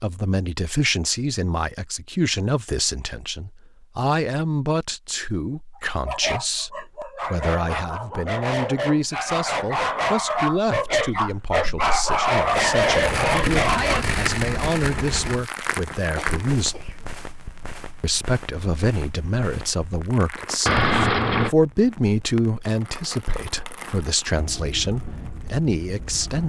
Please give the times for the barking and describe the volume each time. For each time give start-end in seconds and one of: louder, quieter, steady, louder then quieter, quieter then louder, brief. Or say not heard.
5.8-14.1 louder.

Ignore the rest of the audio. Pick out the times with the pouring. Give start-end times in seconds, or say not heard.
20.6-21.6.